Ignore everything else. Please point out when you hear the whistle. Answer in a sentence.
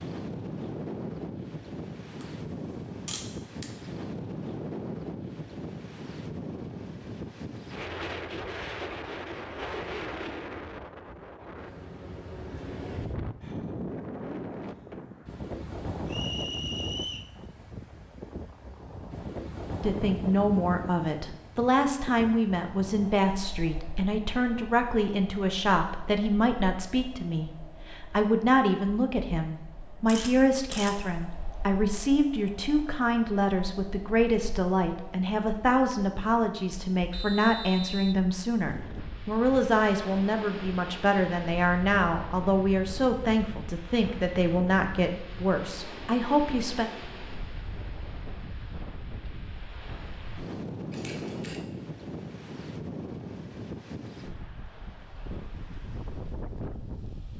The whistle can be heard from 16.1 to 17.3 s and from 37.1 to 38.2 s.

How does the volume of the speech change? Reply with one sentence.
The volume of the speech stays about the same.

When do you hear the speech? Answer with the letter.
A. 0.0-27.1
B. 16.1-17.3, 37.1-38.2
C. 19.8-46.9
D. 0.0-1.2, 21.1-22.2
C.